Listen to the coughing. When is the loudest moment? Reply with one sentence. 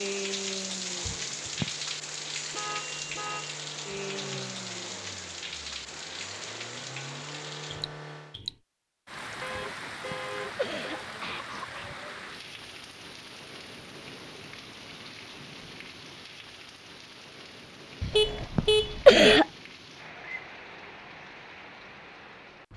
The loudest moment of the coughing is at 19 seconds.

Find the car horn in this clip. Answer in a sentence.
You can hear the car horn from 2.5 to 3.6 s, from 9.4 to 11.1 s and from 18.1 to 19.4 s.